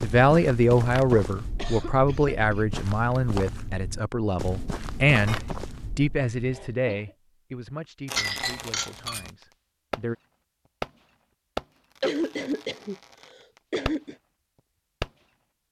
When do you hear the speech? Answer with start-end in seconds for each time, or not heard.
0.0-10.2.